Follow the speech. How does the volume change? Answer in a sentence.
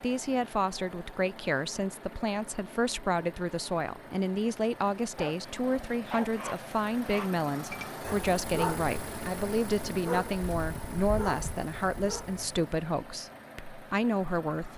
The loudness of the speech stays about the same.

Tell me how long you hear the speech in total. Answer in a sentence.
You can hear the speech for 15 seconds altogether.